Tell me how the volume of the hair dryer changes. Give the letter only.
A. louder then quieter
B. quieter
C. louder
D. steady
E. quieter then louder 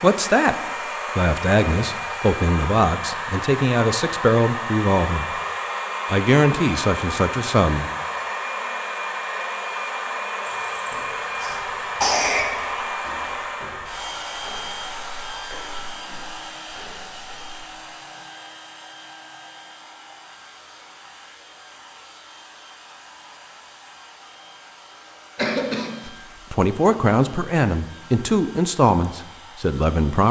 B.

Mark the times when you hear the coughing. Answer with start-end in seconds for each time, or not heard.
10.4-12.4, 25.4-26.1.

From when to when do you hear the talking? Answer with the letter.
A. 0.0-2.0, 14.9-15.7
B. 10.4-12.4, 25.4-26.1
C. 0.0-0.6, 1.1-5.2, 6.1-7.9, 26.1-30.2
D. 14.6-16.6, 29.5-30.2
C.